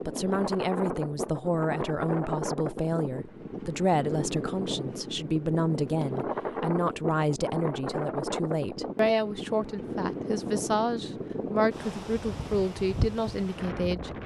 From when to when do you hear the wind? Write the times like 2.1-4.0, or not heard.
0.0-14.2.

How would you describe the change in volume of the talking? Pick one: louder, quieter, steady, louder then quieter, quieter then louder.
steady.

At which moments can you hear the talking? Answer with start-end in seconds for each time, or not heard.
0.1-14.2.